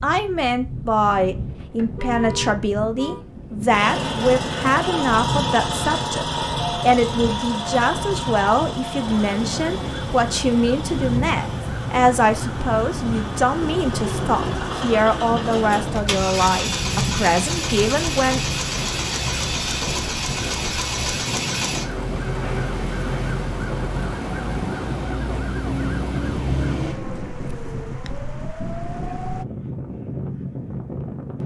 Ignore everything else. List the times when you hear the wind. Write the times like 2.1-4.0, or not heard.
0.0-31.4.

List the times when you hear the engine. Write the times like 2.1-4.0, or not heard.
3.7-27.0.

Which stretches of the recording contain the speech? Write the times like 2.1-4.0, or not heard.
0.0-18.4.